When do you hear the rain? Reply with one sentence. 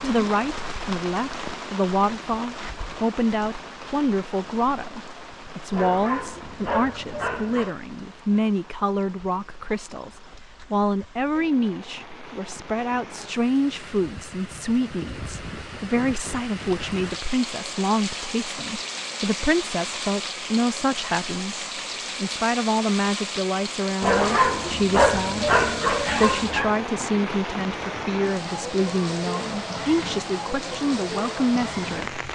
You can hear the rain from 0.0 to 32.3 s.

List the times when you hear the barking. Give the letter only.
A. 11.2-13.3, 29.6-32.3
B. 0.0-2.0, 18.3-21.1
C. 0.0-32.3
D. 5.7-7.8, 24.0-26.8
D.